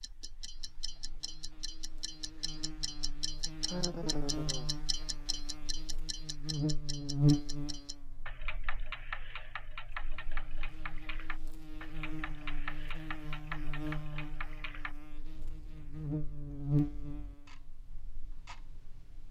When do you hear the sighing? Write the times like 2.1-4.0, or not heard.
3.6-4.7.